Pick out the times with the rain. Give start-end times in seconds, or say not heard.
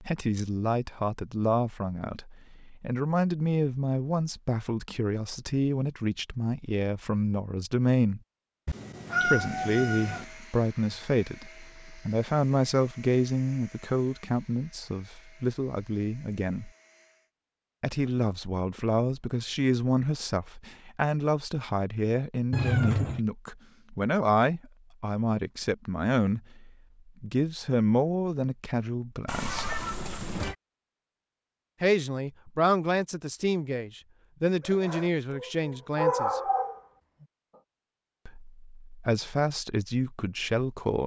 not heard.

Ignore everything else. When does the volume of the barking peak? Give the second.
36 s.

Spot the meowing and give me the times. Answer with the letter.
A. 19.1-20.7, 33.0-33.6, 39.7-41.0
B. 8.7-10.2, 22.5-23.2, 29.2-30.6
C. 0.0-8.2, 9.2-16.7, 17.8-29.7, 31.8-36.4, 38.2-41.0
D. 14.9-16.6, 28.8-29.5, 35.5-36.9
B.